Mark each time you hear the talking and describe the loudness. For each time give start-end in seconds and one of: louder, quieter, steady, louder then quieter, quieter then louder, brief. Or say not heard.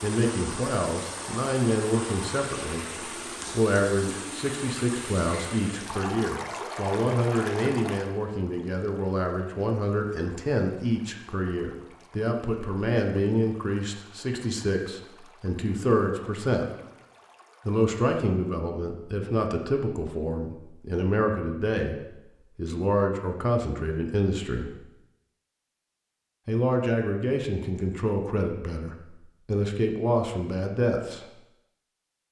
0.0-16.6 steady
17.6-24.7 steady
26.4-31.2 quieter then louder.